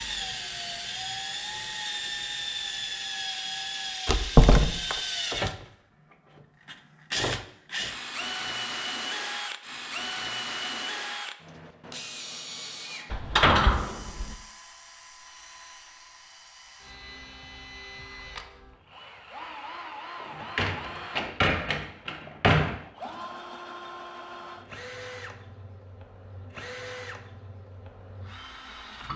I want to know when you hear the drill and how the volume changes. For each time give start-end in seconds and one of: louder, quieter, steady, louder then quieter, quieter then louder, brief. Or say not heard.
0.0-29.1 quieter.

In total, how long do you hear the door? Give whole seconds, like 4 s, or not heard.
5 s.